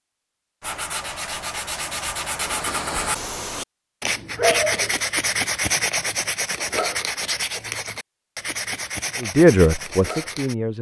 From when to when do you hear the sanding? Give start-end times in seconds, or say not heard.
0.6-10.6.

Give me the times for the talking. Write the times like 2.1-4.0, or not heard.
9.2-10.7.